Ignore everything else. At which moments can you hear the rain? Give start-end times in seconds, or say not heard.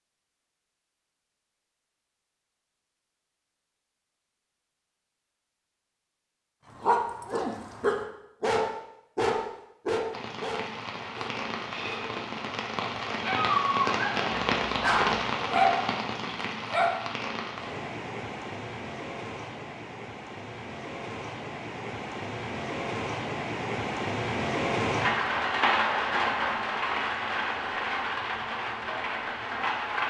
10.1-30.0.